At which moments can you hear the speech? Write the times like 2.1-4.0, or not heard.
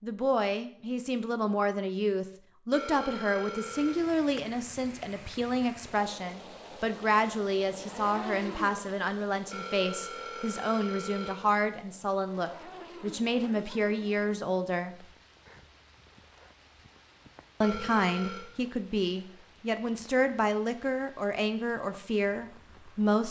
0.0-15.1, 17.6-23.2.